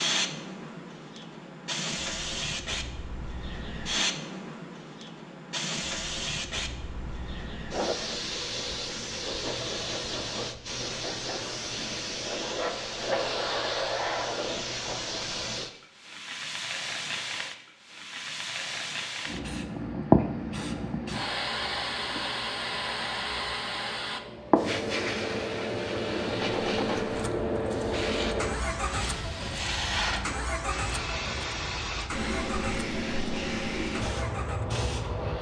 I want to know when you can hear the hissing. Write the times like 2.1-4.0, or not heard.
0.0-35.3.